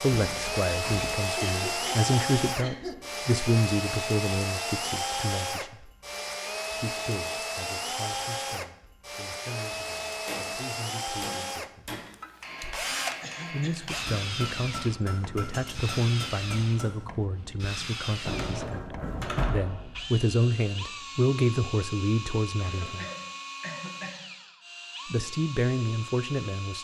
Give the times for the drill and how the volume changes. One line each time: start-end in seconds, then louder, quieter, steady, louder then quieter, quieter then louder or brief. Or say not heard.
0.0-26.7 quieter.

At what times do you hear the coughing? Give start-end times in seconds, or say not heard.
1.4-3.0, 13.2-13.9, 22.6-24.2.